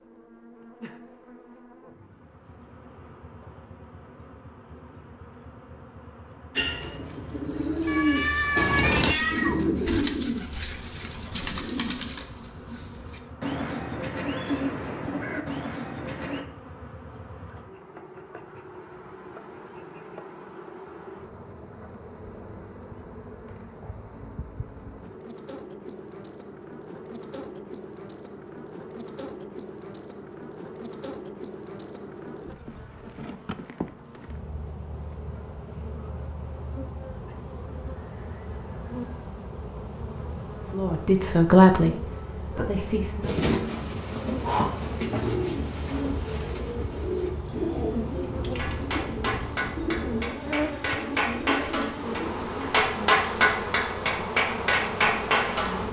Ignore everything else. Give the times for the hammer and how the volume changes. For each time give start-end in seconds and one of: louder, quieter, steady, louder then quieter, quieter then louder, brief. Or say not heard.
48.5-55.8 louder.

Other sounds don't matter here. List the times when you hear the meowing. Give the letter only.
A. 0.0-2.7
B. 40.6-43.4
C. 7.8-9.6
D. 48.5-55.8
C.